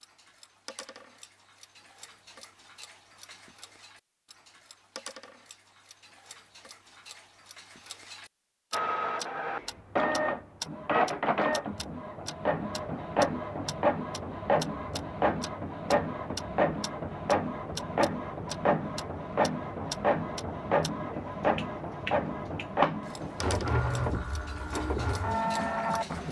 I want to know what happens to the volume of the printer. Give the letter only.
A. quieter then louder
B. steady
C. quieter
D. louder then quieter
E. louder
B.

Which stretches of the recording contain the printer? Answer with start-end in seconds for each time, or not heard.
8.7-26.2.